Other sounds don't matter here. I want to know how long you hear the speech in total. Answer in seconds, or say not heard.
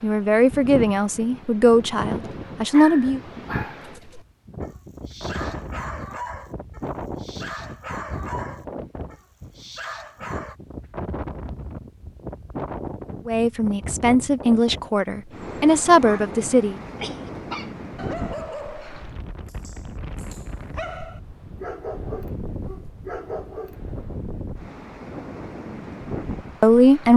7 s.